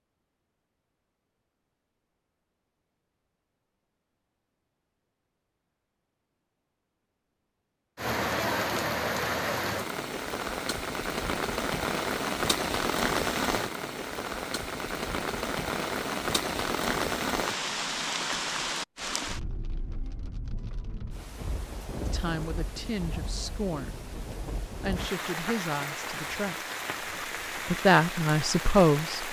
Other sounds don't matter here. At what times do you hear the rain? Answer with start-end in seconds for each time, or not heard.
8.0-29.2.